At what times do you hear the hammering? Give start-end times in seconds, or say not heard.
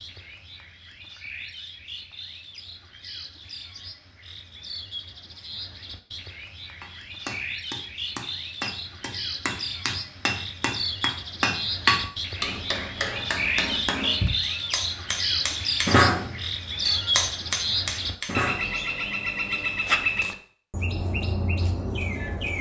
6.8-18.7.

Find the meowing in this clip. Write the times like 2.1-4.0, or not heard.
not heard.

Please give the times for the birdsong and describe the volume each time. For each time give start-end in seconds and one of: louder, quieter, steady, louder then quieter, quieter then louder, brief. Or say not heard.
0.0-22.5 louder.